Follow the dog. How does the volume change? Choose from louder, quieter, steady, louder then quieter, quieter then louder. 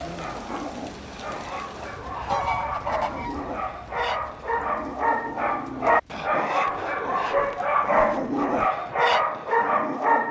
louder.